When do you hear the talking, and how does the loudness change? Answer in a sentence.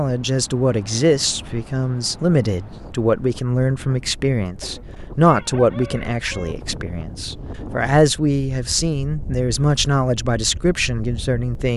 The talking can be heard from 0.0 to 11.7 s, at a steady volume.